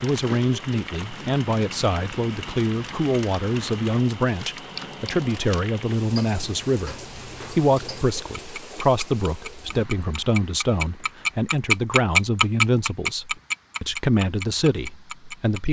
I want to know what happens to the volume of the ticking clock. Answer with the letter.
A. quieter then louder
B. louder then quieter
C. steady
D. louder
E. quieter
D.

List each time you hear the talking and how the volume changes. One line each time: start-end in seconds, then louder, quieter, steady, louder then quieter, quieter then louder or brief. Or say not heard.
0.0-15.6 steady.